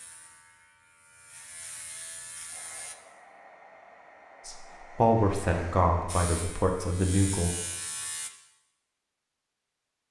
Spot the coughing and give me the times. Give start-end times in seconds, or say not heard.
not heard.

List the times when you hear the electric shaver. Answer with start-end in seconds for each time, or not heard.
0.0-3.0, 6.0-8.3.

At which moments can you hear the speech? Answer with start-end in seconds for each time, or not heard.
4.5-7.5.